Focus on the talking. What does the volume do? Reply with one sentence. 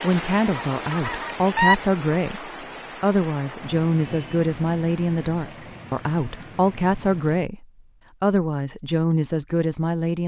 The volume of the talking stays about the same.